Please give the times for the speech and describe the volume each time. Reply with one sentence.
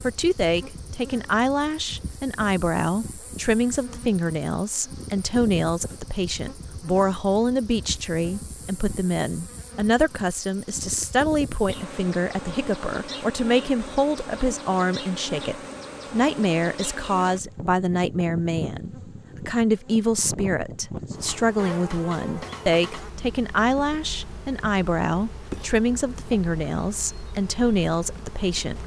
The speech can be heard from 0.0 to 28.8 s, at a steady volume.